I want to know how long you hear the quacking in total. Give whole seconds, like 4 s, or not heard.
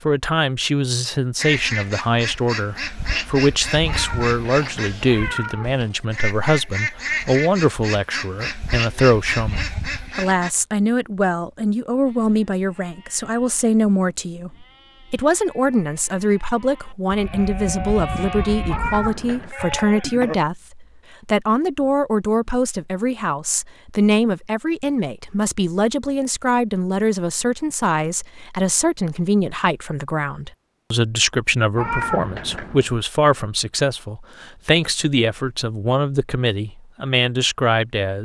9 s.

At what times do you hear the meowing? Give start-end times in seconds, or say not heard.
3.9-6.0, 18.6-19.6, 31.8-33.0.